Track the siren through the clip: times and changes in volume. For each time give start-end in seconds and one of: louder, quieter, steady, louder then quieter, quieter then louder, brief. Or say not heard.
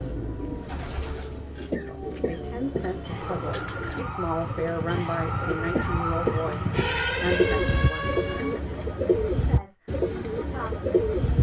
0.0-8.6 louder.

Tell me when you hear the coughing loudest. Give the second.
6 s.